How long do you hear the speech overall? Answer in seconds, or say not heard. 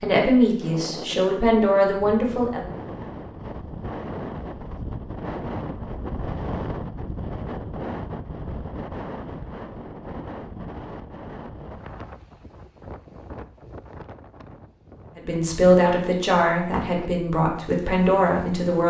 6 s.